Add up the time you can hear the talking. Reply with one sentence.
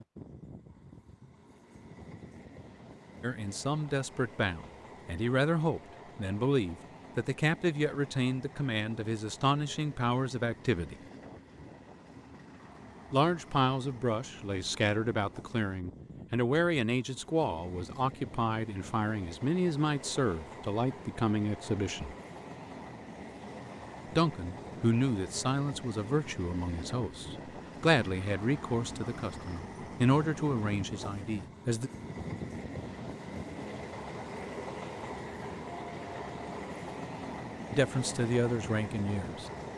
The talking can be heard for 26 seconds in total.